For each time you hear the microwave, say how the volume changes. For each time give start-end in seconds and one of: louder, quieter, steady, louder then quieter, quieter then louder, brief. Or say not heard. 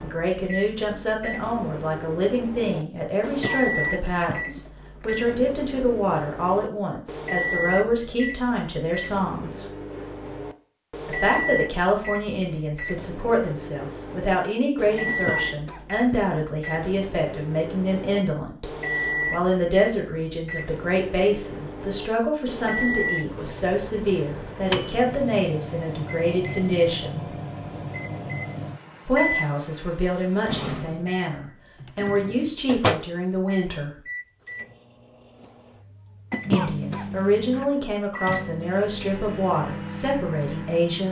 0.0-41.0 steady.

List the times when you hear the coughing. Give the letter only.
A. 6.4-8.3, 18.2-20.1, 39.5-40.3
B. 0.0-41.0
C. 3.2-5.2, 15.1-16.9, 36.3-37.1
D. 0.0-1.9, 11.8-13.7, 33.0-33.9
C.